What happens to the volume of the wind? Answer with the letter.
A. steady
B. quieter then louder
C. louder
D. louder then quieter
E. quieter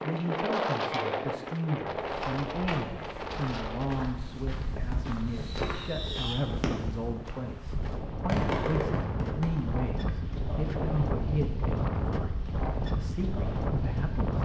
B.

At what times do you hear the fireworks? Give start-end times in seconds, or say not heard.
4.7-7.0, 8.2-9.7.